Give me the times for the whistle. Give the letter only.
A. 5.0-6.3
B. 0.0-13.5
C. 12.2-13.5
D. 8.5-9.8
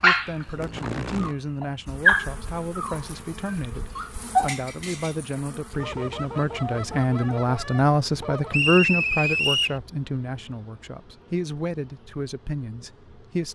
D.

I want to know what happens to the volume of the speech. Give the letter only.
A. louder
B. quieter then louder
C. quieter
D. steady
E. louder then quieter
E.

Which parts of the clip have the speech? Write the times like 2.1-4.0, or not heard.
0.0-13.5.